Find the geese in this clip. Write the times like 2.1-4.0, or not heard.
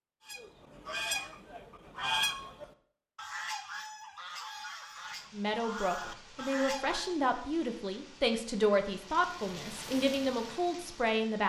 0.2-7.2.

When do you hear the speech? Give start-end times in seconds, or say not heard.
5.3-11.4.